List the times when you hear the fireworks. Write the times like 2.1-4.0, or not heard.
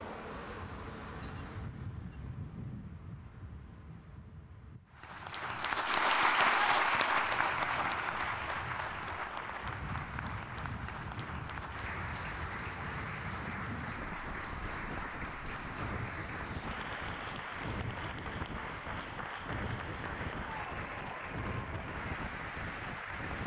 not heard.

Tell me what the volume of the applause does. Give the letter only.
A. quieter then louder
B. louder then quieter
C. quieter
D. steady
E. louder
C.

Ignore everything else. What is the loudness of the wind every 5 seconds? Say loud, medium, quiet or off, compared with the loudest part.
loud, medium, loud, loud, loud.